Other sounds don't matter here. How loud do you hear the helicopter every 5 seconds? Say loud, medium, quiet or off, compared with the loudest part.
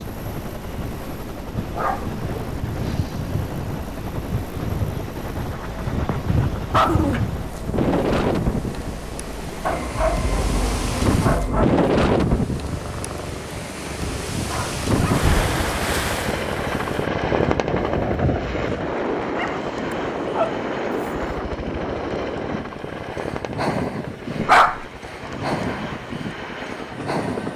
medium, medium, medium, loud, medium, medium.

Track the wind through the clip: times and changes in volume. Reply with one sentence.
The wind can be heard from 0.0 to 27.5 s, getting louder then quieter.